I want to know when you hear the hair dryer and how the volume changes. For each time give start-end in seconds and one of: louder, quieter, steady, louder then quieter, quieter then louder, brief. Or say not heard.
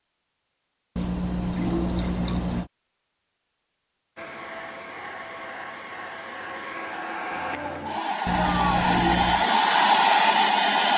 4.2-10.9 louder.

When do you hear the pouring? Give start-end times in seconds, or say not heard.
0.9-2.7, 8.2-9.4.